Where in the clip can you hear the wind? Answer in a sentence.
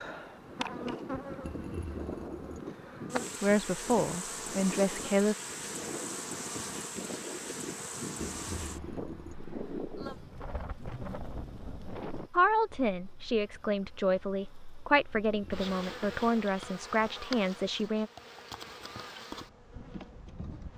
You can hear the wind from 0.0 to 12.3 s.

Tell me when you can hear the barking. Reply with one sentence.
You can't hear the barking here.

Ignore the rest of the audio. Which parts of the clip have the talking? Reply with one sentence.
You can hear the talking from 3.4 to 5.3 s and from 12.3 to 18.1 s.